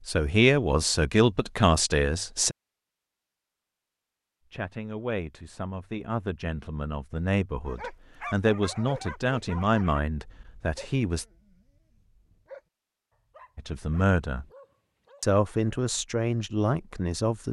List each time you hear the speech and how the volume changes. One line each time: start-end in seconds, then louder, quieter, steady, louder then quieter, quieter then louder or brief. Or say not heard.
0.1-2.5 brief
4.5-11.2 louder
13.6-14.4 brief
15.2-17.4 brief.